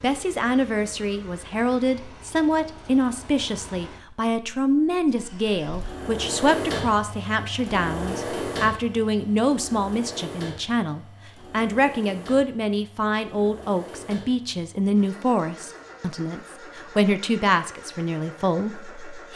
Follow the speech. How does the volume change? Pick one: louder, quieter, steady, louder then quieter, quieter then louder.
steady.